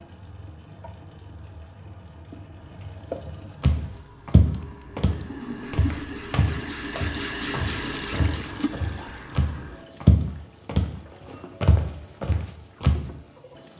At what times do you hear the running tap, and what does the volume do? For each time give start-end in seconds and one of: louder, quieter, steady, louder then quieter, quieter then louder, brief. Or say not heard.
0.0-13.7 louder then quieter.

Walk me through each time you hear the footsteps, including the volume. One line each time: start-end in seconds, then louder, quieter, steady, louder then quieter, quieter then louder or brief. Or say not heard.
3.6-10.9 quieter then louder
11.6-13.1 brief.